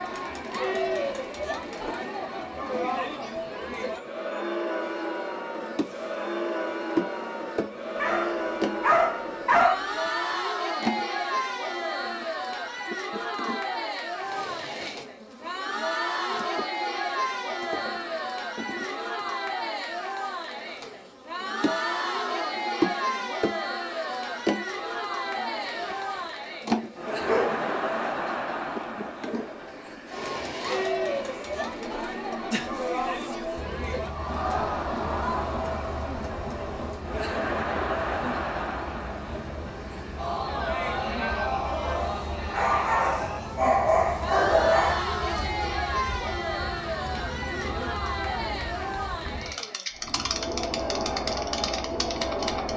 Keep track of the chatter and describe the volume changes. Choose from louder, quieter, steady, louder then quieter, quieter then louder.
steady.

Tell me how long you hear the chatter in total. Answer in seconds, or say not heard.
53 s.